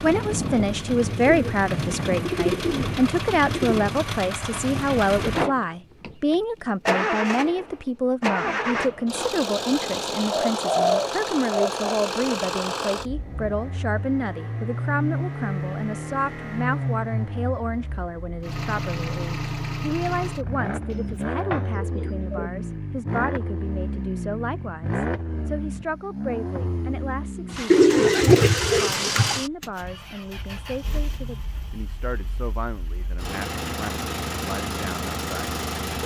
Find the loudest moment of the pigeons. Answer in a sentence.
The volume of the pigeons peaks at 28 seconds.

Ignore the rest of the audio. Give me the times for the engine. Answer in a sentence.
The engine can be heard from 0.0 to 36.0 s.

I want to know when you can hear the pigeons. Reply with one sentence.
The pigeons can be heard from 1.1 to 3.8 s, from 10.3 to 11.8 s, from 20.9 to 22.5 s and from 27.7 to 29.4 s.